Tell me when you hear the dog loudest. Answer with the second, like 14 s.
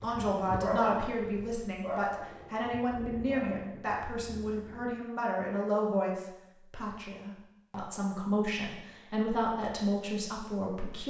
1 s.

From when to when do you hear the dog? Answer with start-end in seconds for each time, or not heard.
0.0-3.7.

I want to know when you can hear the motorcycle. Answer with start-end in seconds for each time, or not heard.
not heard.